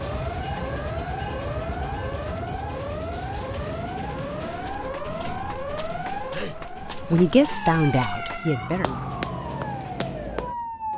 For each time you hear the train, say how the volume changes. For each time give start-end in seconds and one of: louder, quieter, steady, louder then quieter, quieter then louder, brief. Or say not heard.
0.0-5.0 quieter.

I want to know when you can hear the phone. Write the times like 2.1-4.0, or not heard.
not heard.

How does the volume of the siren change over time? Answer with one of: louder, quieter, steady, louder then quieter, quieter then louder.
steady.